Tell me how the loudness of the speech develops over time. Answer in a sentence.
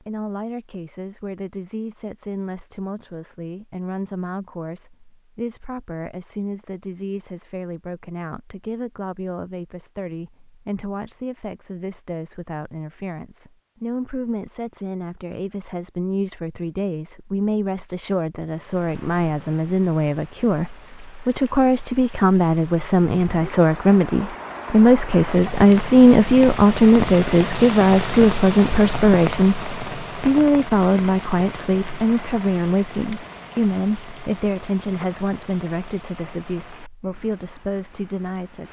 The loudness of the speech goes up, then down.